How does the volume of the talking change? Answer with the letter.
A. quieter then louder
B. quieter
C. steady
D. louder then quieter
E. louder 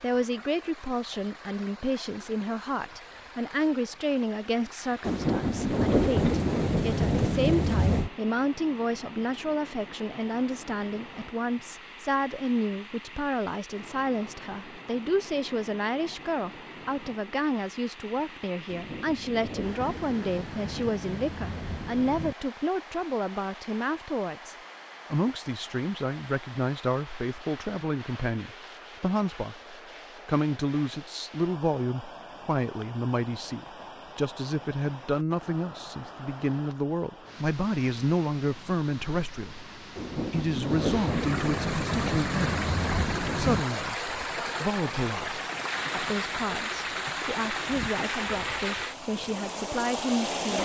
C.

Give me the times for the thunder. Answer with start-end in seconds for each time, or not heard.
5.0-8.1, 18.6-22.4, 40.0-43.6.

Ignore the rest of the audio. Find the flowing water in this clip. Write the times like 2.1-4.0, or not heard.
0.0-50.6.